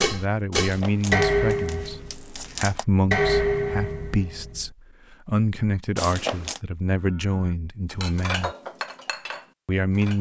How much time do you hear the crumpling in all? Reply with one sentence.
The crumpling can be heard for 3 seconds in total.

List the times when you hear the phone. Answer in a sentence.
You can't hear the phone here.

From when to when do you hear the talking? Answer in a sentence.
The talking can be heard from 0.1 to 8.5 s and from 9.7 to 10.1 s.